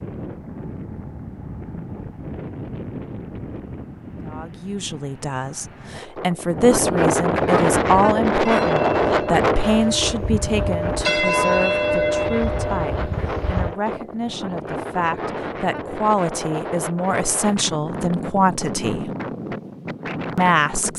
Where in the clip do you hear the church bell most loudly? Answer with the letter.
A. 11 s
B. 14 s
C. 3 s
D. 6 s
A.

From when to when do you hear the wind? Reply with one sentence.
The wind can be heard from 0.0 to 20.9 s.